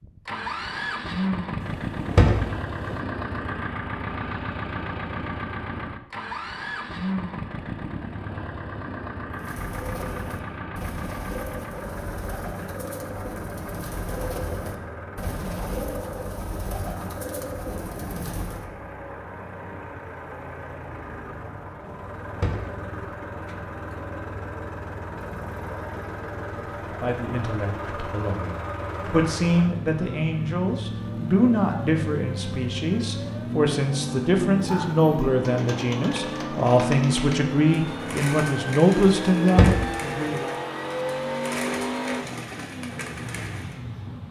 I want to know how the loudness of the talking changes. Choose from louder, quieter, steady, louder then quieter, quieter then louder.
louder.